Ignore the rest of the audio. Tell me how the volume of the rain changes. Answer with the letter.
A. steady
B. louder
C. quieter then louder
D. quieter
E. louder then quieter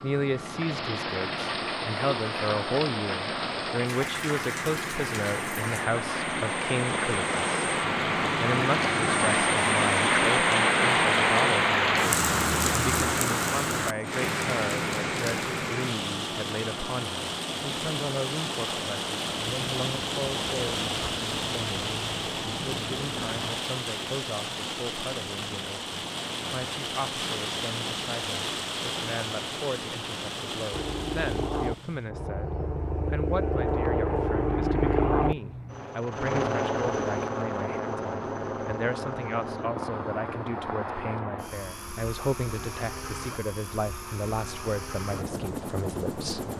E.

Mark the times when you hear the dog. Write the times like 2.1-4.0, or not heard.
not heard.